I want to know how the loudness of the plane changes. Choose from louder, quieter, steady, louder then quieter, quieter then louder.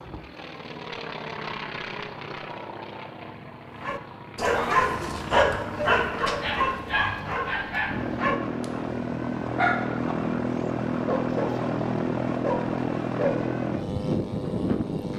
louder.